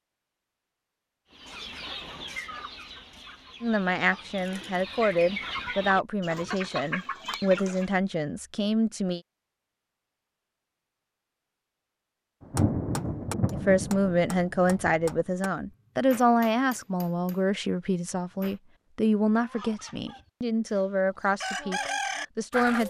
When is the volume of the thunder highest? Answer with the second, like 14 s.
13 s.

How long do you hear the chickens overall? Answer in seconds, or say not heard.
10 s.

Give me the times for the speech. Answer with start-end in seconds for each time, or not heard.
3.6-9.2, 13.5-22.8.